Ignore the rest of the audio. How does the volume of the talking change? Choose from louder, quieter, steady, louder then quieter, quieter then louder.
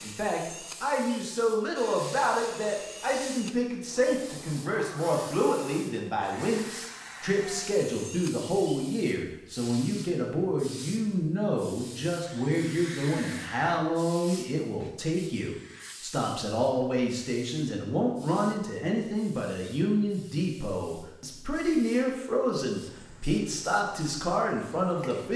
steady.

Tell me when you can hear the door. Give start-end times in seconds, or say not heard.
not heard.